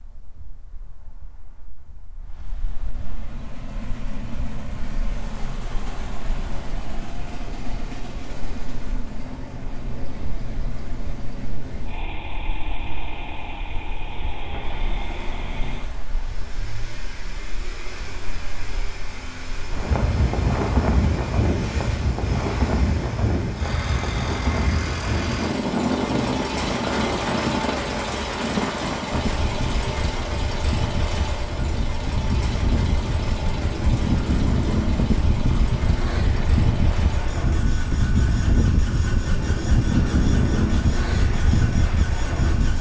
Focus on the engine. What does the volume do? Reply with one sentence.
The volume of the engine goes up, then down.